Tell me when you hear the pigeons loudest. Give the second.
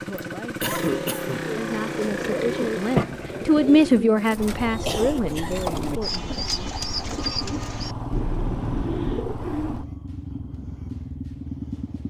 3 s.